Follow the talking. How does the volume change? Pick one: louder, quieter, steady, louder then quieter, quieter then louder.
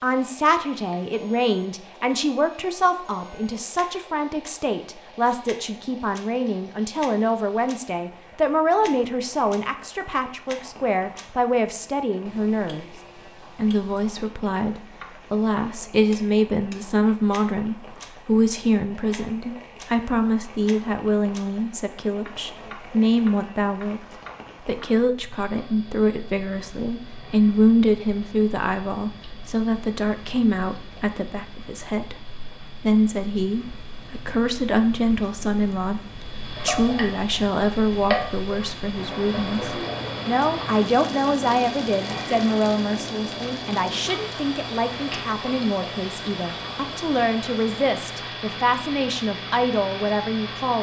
steady.